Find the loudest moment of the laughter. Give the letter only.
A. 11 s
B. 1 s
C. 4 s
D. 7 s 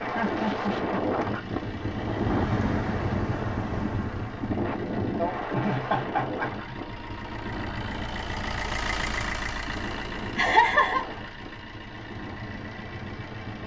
A.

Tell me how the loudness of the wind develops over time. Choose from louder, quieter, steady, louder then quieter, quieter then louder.
quieter.